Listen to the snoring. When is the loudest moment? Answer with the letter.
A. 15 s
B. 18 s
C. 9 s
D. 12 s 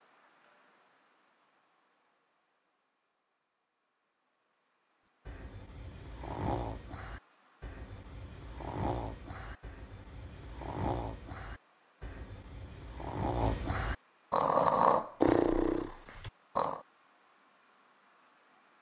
A.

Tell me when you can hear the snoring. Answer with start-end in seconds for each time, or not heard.
5.2-16.8.